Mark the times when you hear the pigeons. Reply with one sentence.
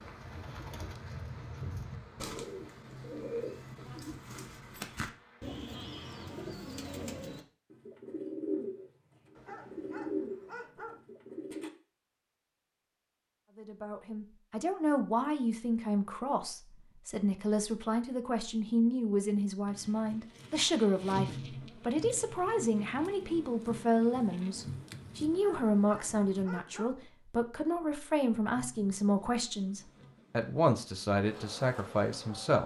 You can hear the pigeons from 0.0 to 11.7 s.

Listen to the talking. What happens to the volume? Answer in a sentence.
The loudness of the talking stays about the same.